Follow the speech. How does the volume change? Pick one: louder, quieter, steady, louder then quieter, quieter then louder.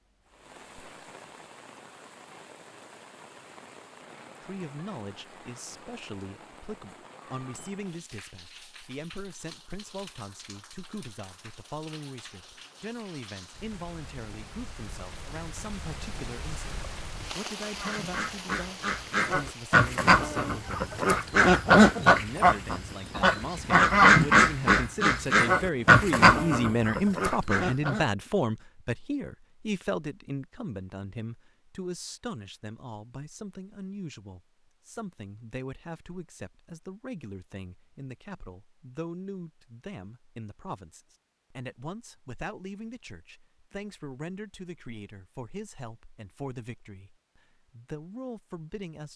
louder then quieter.